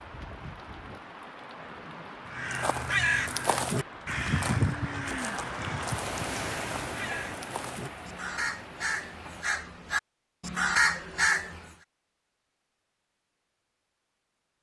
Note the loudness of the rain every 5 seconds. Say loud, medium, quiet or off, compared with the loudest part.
medium, loud, off.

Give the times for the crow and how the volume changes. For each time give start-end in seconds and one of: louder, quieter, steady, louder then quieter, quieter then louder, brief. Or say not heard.
2.2-11.8 quieter then louder.